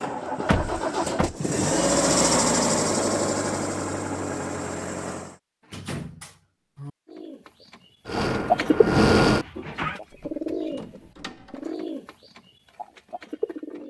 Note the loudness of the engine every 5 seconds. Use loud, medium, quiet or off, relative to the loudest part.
loud, loud, off.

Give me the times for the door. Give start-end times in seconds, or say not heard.
0.5-1.4, 5.7-6.9, 10.1-11.7.